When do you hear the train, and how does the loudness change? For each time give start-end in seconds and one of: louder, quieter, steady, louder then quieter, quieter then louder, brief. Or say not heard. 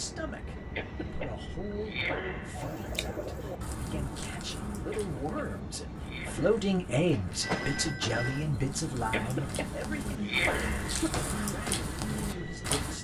0.0-12.9 steady.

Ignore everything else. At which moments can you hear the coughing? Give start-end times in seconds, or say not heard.
0.8-2.6, 4.9-6.6, 9.1-11.1.